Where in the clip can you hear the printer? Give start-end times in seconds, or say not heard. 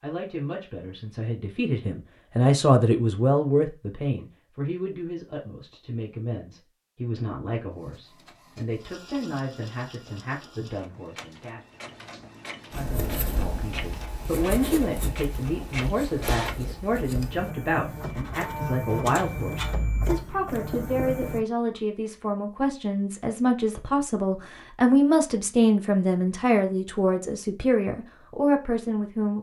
7.7-21.4.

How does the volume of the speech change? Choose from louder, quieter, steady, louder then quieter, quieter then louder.
quieter then louder.